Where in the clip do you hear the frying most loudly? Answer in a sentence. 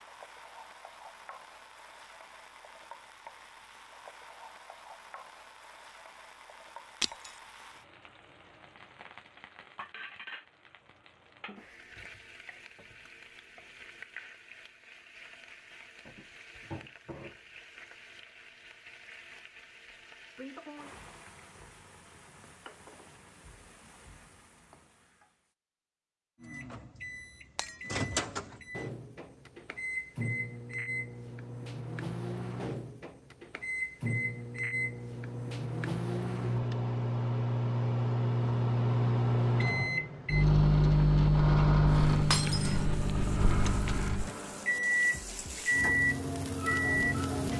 The volume of the frying peaks at 47 seconds.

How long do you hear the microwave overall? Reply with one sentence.
You can hear the microwave for 21 seconds altogether.